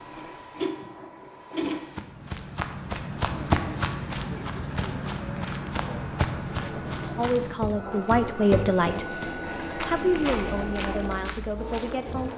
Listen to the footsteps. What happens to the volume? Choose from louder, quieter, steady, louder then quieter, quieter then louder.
quieter.